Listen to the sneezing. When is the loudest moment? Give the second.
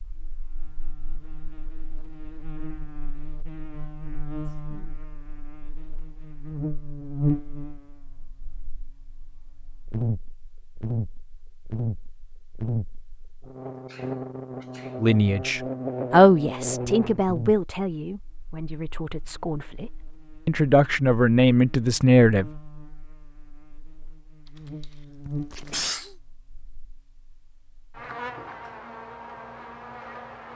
26 s.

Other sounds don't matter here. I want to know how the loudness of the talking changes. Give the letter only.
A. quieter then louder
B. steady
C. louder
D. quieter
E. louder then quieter
A.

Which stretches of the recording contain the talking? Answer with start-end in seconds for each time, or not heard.
15.0-22.4.